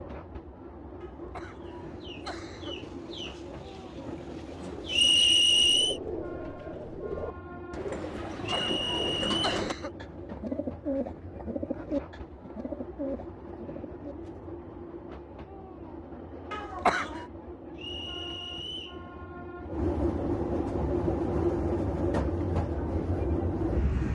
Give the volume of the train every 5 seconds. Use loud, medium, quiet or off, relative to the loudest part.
quiet, quiet, quiet, medium, loud.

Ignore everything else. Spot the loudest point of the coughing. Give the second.
17 s.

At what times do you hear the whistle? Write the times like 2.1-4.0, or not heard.
4.9-6.0, 8.4-9.5, 17.8-19.0.